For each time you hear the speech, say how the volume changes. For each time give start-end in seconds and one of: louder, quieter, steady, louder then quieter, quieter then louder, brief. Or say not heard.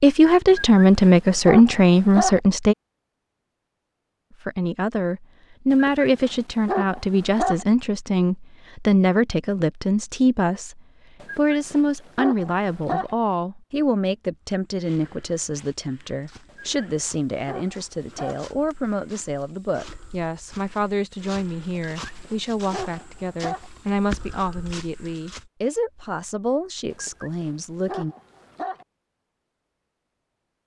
0.0-2.8 brief
4.5-28.1 quieter.